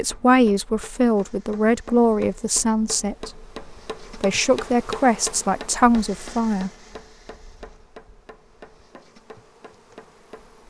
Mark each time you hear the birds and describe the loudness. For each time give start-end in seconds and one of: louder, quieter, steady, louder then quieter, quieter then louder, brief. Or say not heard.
not heard.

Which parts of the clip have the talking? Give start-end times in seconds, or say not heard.
0.0-3.5, 4.1-6.7.